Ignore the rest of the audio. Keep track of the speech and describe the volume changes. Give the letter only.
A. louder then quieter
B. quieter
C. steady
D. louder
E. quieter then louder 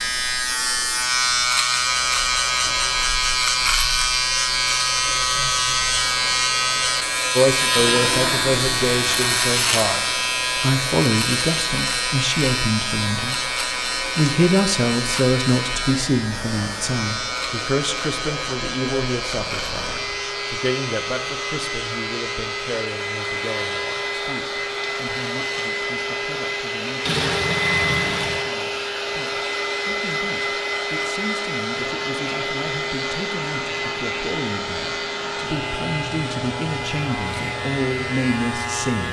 E.